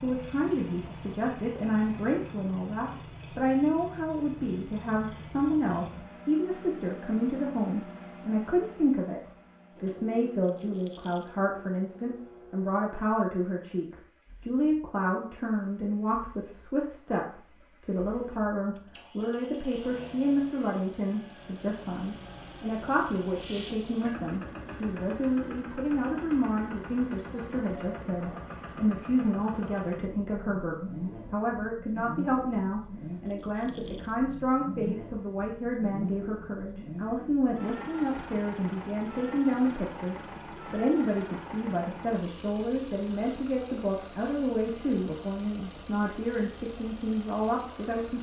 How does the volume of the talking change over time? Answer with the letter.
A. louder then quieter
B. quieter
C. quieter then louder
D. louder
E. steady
E.